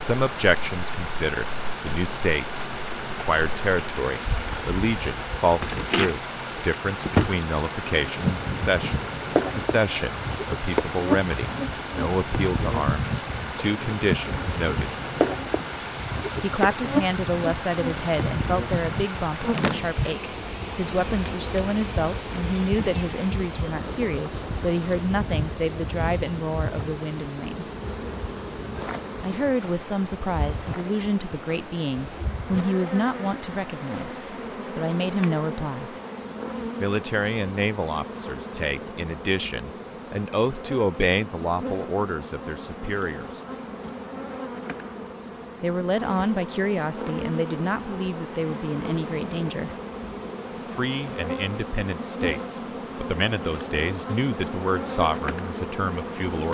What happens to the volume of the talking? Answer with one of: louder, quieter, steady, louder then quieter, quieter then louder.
steady.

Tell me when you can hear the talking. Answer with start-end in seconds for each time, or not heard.
0.0-14.9, 16.4-27.6, 29.2-36.0, 36.8-43.4, 45.6-49.7, 50.7-56.4.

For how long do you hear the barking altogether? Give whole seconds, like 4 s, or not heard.
not heard.